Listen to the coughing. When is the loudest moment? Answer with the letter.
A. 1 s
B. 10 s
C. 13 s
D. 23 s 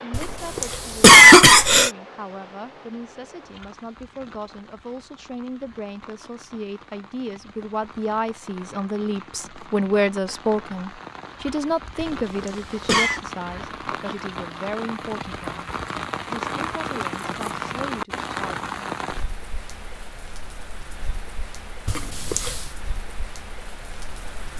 A.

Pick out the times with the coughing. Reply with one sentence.
You can hear the coughing from 0.1 to 1.9 s, from 11.9 to 13.2 s and from 21.9 to 22.6 s.